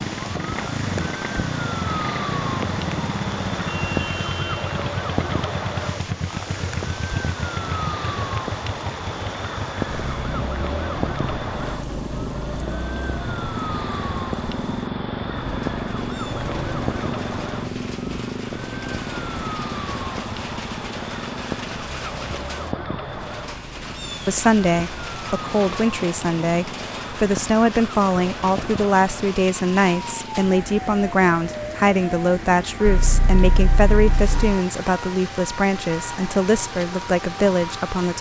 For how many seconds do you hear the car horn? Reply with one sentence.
You can hear the car horn for 3 seconds altogether.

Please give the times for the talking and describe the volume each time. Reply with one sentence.
You can hear the talking from 24.2 to 38.1 s, at a steady volume.